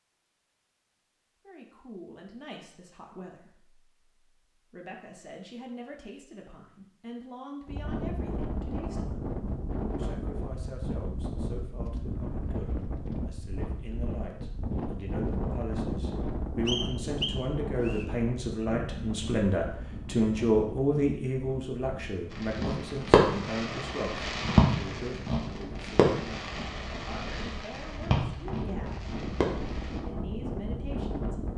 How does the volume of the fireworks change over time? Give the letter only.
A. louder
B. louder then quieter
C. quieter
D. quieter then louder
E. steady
C.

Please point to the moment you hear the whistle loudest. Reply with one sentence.
The loudest moment of the whistle is at 17 seconds.